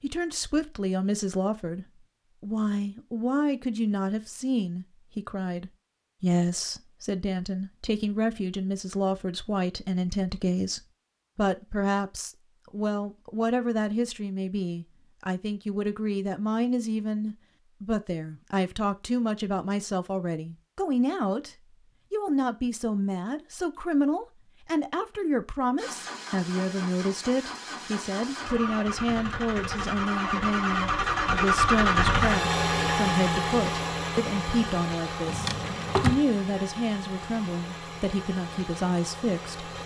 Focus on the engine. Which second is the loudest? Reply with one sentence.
The loudest moment of the engine is at 32 seconds.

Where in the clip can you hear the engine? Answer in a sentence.
The engine can be heard from 25.8 to 39.8 s.